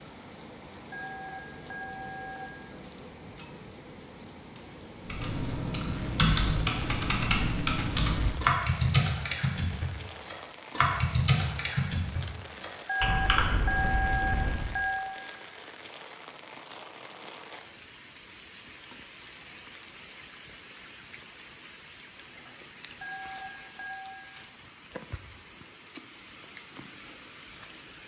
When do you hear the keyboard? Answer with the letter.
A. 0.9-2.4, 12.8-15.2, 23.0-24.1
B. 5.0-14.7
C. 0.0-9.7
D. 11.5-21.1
B.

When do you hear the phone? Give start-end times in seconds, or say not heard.
0.9-2.4, 12.8-15.2, 23.0-24.1.